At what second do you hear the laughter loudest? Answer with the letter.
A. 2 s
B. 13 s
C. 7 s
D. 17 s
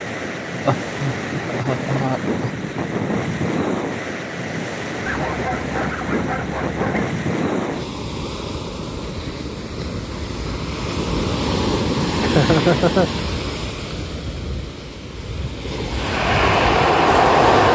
B.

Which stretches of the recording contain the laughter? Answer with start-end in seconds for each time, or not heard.
0.7-2.5, 12.2-13.1.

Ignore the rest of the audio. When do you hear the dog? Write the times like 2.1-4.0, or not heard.
5.0-7.0.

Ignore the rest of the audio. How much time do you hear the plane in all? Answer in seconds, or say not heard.
2 s.